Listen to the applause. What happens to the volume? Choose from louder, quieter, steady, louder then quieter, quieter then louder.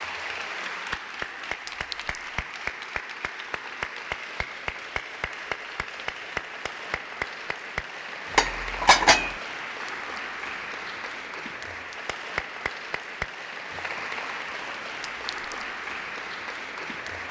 steady.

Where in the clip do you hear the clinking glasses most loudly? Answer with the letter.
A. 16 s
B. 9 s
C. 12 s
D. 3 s
B.